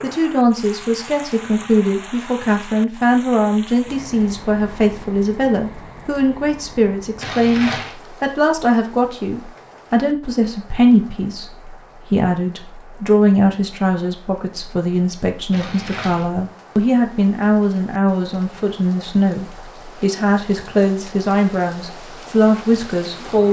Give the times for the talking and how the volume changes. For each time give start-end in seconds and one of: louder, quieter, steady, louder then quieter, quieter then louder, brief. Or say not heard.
0.0-23.4 steady.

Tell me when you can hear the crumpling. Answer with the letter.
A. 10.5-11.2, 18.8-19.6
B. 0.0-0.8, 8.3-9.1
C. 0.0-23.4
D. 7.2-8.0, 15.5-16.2
D.